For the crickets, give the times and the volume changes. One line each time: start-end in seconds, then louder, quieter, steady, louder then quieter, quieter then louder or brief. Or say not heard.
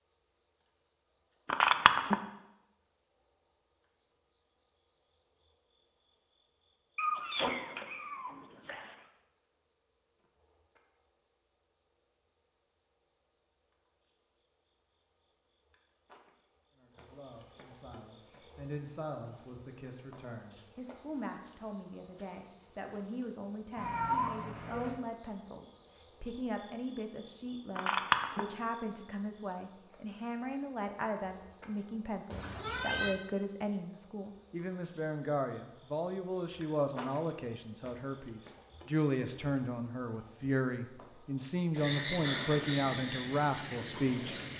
0.0-44.5 louder.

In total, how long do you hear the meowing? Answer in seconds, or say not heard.
4 s.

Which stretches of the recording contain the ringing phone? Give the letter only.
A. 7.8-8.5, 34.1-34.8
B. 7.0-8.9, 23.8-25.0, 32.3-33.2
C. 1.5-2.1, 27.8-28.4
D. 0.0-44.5
C.